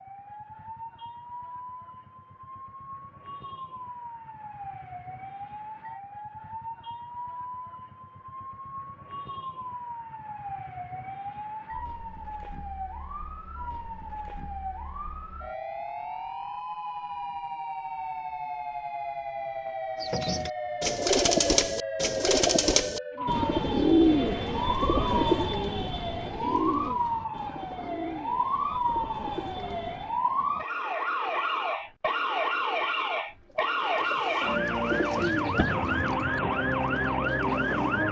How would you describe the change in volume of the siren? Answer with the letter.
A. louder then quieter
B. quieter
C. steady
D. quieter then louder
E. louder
E.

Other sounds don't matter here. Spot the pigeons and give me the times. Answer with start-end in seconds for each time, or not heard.
20.0-30.1, 33.5-38.0.